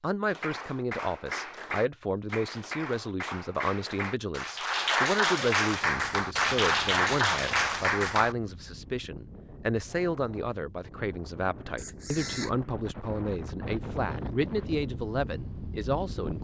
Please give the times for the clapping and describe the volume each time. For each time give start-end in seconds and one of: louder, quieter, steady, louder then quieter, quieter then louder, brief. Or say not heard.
0.2-8.3 louder.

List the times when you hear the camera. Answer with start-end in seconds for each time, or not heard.
11.8-12.6.